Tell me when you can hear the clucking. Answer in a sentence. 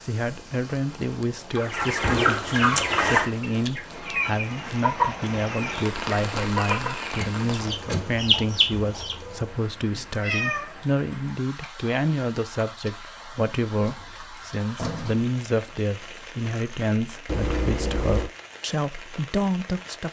You can hear the clucking from 1.6 to 9.2 s.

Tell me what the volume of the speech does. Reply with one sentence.
The loudness of the speech stays about the same.